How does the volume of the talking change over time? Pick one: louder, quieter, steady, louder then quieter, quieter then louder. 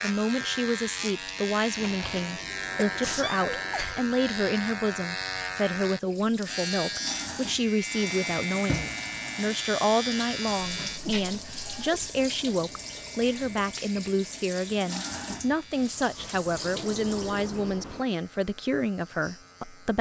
steady.